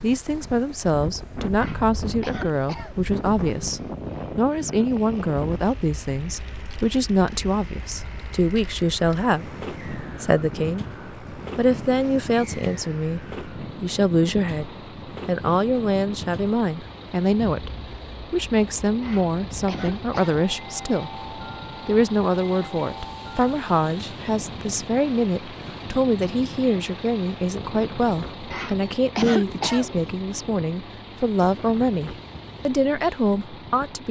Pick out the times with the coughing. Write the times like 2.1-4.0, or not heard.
1.6-3.0, 19.0-20.4, 28.5-30.1.